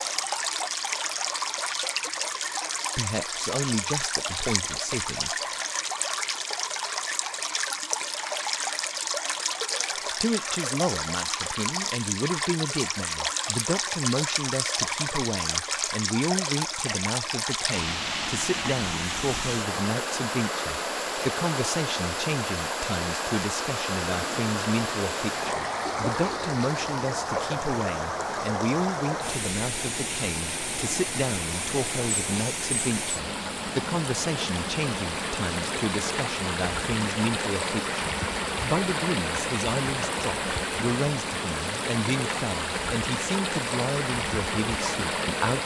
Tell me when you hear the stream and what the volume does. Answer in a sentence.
You can hear the stream from 0.0 to 45.6 s, at a steady volume.